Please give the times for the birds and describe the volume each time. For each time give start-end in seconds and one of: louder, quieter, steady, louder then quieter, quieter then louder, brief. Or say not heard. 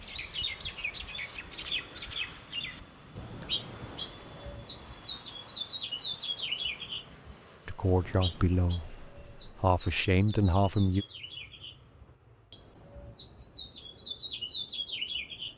0.0-15.5 quieter then louder.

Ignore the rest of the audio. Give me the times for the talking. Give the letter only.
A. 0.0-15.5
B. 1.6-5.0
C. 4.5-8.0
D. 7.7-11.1
D.